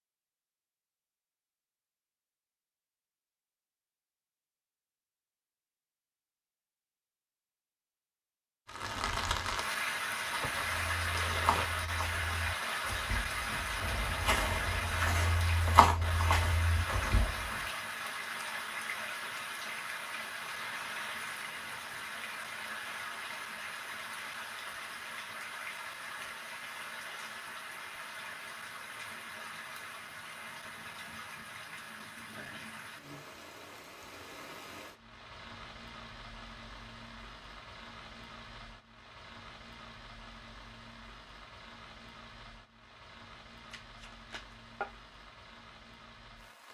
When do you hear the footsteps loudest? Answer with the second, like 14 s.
16 s.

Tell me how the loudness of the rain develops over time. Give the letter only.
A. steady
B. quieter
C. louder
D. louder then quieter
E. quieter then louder
B.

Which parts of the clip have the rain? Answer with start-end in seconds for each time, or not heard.
8.7-46.7.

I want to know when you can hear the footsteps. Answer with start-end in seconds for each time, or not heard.
10.6-17.6.